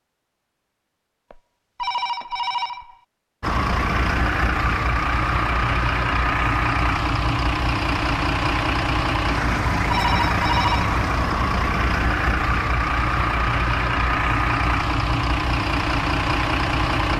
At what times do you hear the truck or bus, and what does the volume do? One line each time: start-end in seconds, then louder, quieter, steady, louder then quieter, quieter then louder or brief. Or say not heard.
3.4-17.1 steady.